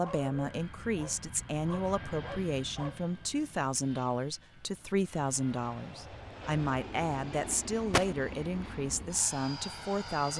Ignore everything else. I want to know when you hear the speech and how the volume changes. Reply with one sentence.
The speech can be heard from 0.0 to 10.3 s, at a steady volume.